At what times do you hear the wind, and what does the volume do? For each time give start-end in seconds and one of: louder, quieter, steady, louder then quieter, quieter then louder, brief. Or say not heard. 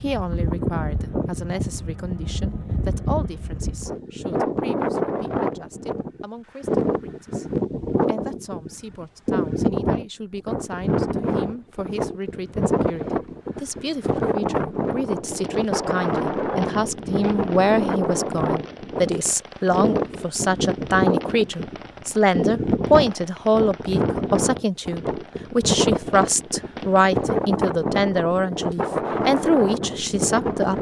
0.0-30.7 steady.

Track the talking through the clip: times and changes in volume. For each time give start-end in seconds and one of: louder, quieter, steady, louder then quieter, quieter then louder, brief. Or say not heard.
0.0-7.5 quieter
8.1-30.7 louder.